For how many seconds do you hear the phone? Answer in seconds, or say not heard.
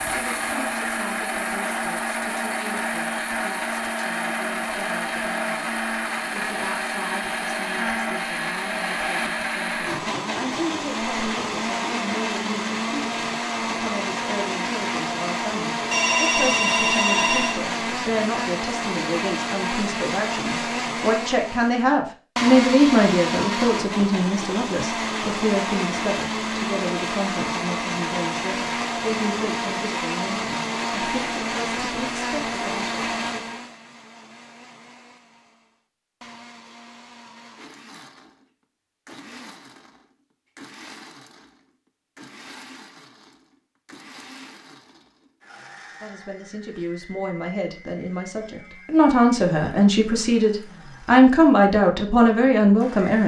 2 s.